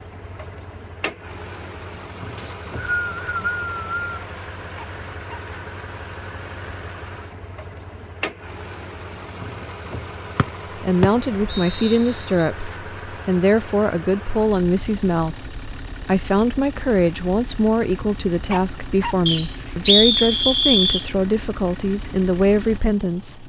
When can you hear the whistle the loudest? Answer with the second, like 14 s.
20 s.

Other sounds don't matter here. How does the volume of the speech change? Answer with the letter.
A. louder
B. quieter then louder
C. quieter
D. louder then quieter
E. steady
E.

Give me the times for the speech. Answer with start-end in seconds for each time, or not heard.
10.8-23.4.